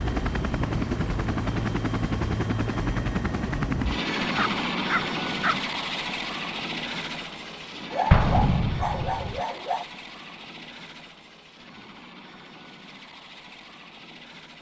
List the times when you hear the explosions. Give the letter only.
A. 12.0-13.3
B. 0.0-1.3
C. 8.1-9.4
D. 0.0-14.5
C.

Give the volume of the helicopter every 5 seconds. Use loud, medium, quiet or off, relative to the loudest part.
loud, medium, quiet.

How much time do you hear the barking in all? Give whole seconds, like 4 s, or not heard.
3 s.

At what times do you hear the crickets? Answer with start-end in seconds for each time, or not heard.
not heard.